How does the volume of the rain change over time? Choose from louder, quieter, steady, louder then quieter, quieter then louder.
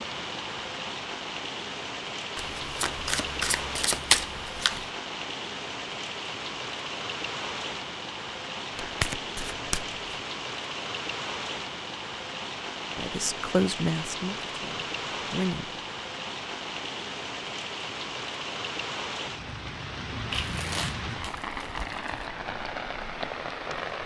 steady.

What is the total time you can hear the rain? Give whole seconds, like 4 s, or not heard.
24 s.